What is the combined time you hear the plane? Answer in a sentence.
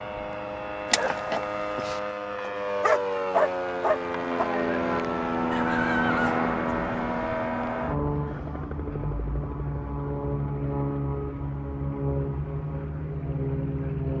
You can hear the plane for 14 seconds altogether.